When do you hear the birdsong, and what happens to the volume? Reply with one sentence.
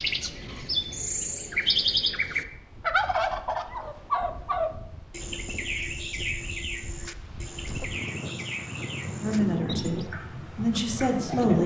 You can hear the birdsong from 0.0 to 11.6 s, getting quieter.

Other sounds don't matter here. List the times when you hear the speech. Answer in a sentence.
The speech can be heard from 9.2 to 11.6 s.